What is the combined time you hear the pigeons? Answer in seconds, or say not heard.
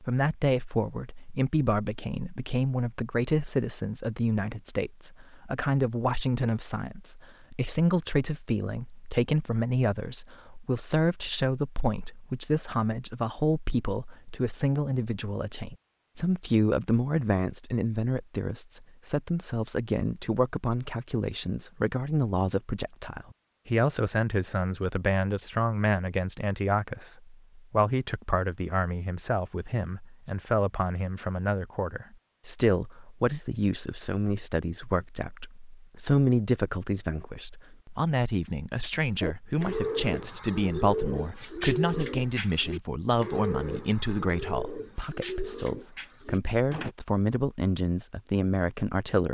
8 s.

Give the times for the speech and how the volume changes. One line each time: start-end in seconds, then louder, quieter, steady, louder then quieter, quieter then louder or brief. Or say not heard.
0.0-49.2 steady.